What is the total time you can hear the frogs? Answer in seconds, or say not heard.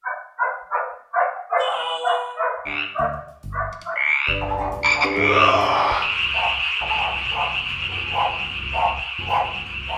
7 s.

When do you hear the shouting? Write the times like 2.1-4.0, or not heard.
1.6-2.4, 5.2-6.1.